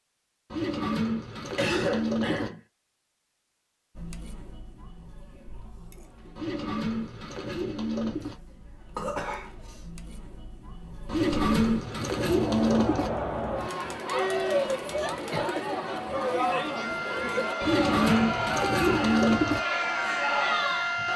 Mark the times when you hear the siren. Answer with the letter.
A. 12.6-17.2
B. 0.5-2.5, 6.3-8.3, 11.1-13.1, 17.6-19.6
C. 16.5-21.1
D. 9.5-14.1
C.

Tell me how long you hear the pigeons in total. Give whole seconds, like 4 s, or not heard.
8 s.